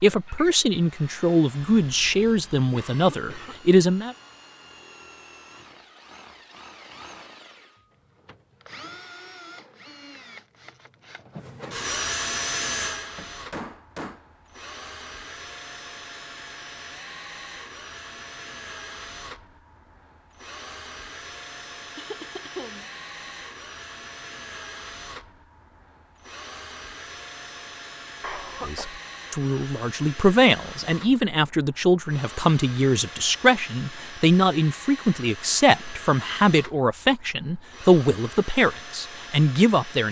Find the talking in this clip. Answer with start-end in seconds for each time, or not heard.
0.0-4.2, 28.6-40.0.